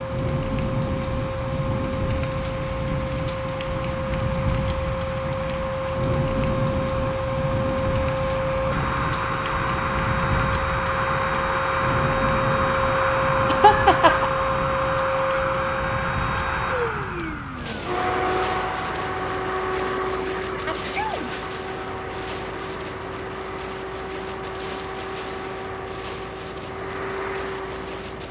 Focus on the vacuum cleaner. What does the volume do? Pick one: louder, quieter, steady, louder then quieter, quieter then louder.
louder then quieter.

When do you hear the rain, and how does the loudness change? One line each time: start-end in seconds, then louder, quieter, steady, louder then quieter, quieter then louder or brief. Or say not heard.
0.0-28.2 quieter.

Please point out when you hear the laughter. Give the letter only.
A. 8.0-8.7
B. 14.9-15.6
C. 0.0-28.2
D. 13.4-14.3
D.